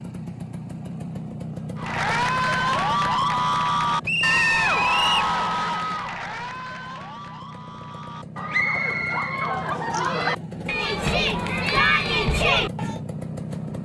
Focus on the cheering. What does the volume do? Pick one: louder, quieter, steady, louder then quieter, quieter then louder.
quieter then louder.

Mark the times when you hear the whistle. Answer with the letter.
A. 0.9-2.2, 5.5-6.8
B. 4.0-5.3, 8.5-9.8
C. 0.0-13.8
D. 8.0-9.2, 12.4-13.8
B.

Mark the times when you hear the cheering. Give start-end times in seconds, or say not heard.
1.8-13.0.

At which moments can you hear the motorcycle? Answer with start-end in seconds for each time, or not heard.
0.0-13.8.